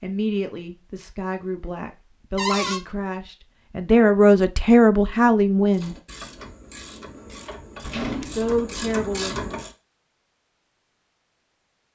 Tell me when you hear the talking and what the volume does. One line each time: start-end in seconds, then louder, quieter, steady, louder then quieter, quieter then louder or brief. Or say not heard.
0.0-6.0 louder
8.2-9.6 brief.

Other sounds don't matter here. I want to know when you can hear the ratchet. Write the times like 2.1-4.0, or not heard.
5.6-9.8.